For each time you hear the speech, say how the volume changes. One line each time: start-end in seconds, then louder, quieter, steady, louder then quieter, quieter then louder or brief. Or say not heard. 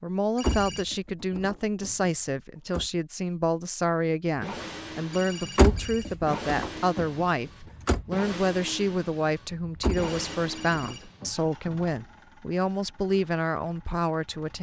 0.0-14.5 steady.